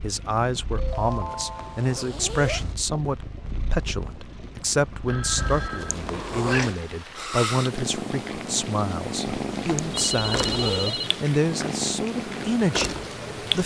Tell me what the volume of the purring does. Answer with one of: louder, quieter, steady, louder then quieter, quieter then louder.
louder.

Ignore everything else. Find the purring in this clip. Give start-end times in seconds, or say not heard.
0.0-13.6.